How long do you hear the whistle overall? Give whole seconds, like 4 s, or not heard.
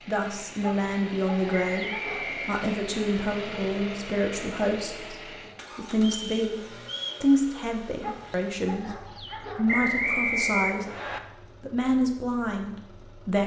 4 s.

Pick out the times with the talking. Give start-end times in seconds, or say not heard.
0.1-6.6, 7.2-10.9, 11.6-13.4.